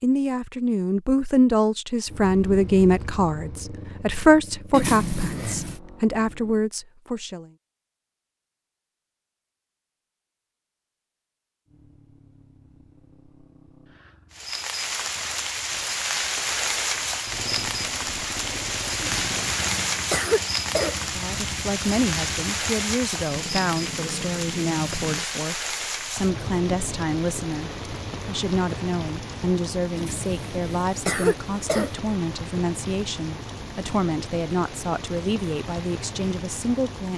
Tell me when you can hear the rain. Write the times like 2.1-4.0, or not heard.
14.3-37.1.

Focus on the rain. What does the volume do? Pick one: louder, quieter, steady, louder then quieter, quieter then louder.
quieter.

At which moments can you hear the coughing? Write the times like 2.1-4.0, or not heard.
4.7-5.8, 19.0-21.0, 29.9-31.9.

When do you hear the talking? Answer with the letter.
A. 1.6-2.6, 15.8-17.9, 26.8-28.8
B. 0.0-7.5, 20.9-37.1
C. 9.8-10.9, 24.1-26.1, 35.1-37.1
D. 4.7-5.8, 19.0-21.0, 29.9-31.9
B.